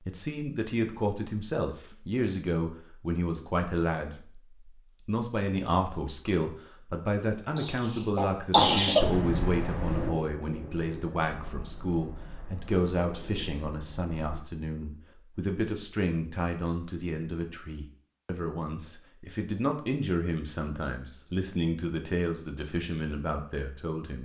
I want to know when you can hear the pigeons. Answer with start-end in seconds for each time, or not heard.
8.9-14.4.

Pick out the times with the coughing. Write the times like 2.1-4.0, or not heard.
7.5-9.1.